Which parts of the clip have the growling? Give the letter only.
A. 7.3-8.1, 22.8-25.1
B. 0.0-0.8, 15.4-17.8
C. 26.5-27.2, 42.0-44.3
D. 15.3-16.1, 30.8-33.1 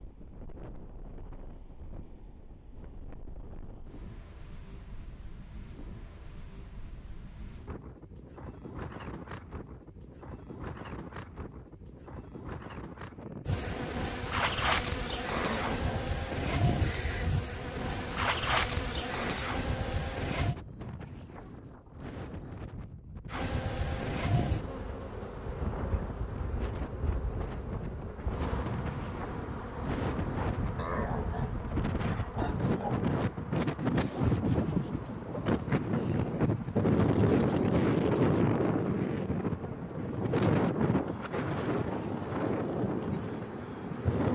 D.